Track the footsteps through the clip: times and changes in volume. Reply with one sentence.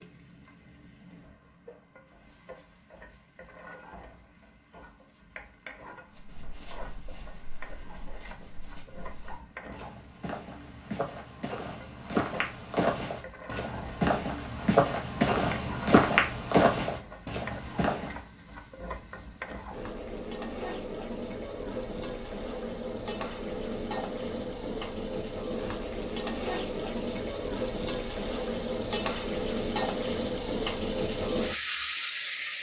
You can hear the footsteps from 6.1 to 18.2 s, getting louder.